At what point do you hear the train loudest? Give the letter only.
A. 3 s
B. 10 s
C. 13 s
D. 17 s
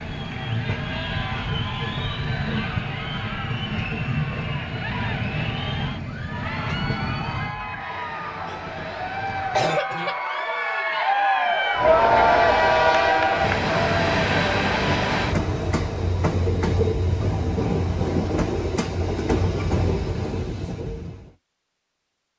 C.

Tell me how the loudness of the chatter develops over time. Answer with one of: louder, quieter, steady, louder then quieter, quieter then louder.
louder.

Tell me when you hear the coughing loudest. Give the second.
10 s.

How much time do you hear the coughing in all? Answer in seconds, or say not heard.
2 s.